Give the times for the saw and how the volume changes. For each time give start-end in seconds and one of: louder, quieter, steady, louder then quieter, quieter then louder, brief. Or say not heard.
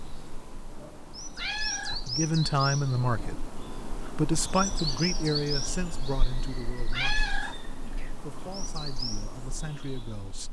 not heard.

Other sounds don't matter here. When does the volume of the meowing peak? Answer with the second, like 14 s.
7 s.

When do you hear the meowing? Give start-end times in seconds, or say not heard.
1.4-2.0, 6.9-8.1.